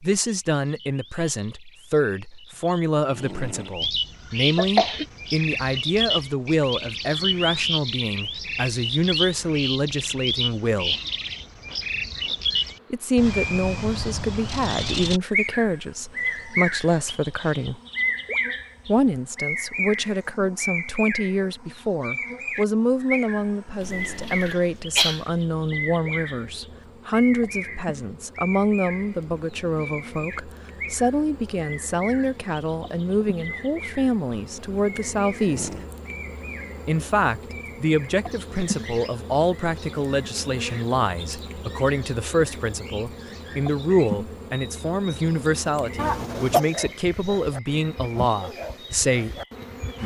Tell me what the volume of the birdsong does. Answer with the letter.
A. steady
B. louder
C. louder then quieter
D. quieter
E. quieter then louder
D.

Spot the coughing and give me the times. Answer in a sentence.
You can hear the coughing from 4.5 to 5.0 s, from 23.8 to 25.2 s and from 46.0 to 46.6 s.